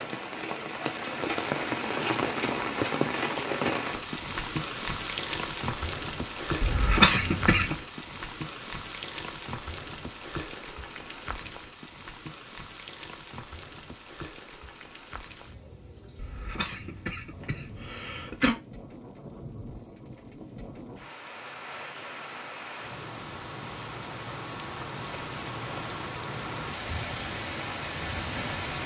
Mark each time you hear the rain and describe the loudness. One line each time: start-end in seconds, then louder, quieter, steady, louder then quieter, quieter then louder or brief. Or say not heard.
0.0-28.8 quieter then louder.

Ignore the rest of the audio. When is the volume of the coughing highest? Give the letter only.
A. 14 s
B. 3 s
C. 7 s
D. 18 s
C.